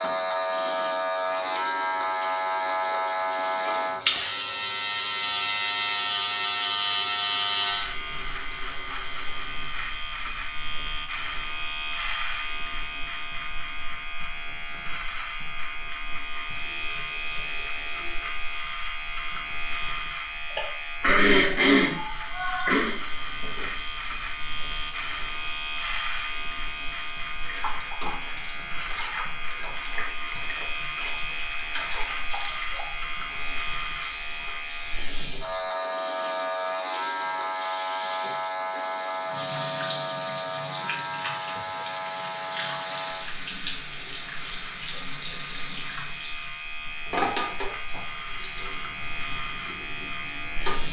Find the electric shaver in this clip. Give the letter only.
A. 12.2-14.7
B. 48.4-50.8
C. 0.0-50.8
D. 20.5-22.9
C.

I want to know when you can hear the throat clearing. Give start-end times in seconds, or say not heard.
20.5-22.9.